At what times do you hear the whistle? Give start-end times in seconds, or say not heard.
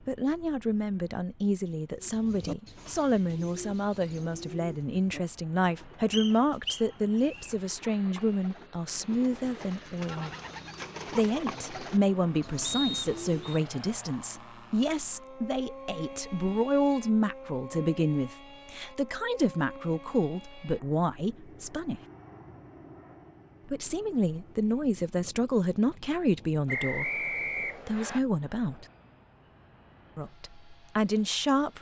6.1-7.5, 12.6-13.6, 26.6-28.2.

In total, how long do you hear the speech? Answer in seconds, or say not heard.
27 s.